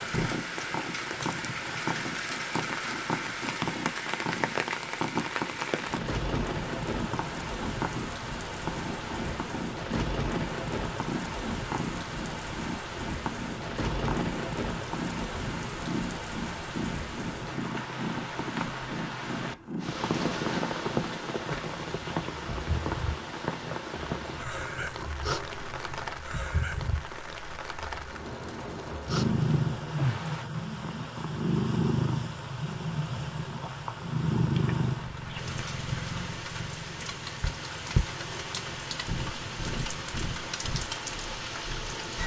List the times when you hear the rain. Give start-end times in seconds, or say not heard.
0.0-42.2.